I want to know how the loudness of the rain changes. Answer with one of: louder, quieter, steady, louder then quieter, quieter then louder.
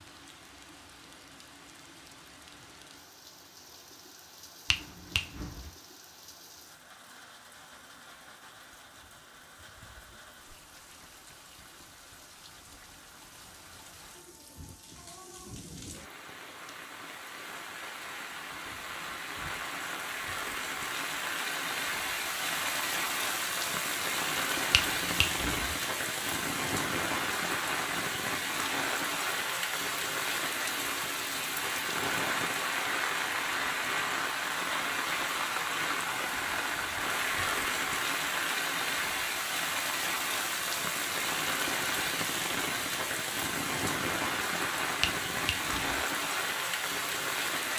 louder.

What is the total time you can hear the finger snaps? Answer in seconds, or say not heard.
3 s.